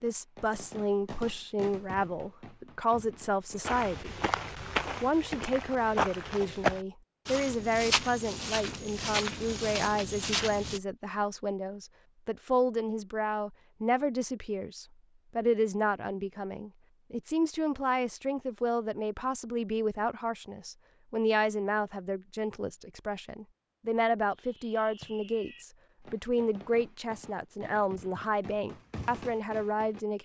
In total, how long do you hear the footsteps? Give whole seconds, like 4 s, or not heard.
7 s.